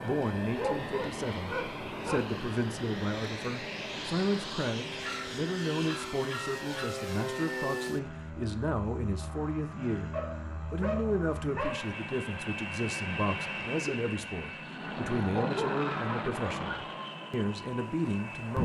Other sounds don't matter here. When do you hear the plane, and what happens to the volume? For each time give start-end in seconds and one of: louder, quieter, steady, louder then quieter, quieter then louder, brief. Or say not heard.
0.0-18.6 steady.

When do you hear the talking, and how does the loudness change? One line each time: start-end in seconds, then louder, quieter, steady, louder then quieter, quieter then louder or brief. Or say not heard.
0.0-18.6 steady.